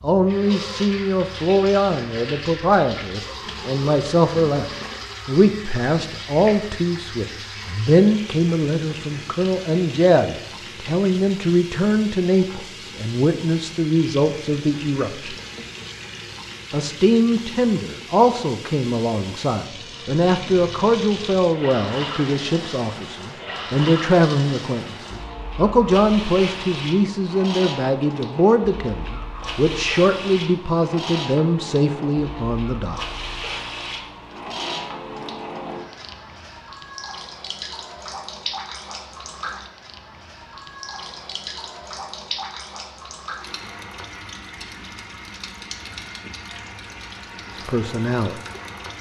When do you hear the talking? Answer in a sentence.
You can hear the talking from 0.0 to 4.7 s, from 5.2 to 15.3 s, from 16.7 to 33.0 s and from 47.6 to 48.4 s.